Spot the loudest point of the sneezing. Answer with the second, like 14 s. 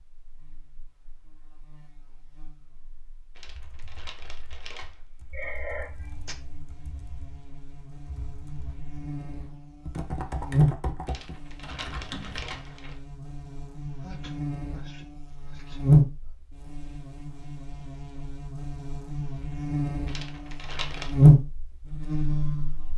6 s.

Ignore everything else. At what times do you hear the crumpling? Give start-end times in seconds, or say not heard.
3.4-5.0, 11.1-12.9, 20.1-21.1.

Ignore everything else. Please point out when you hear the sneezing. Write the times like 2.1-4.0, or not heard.
5.3-6.3, 14.0-16.3.